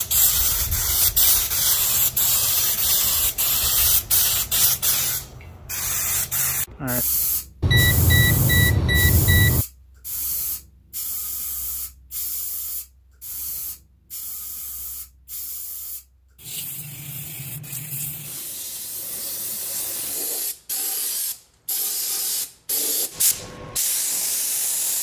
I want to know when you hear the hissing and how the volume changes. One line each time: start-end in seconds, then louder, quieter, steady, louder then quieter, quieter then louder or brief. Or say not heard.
0.0-24.9 quieter then louder.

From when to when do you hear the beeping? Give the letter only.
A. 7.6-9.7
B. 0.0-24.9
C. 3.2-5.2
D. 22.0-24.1
A.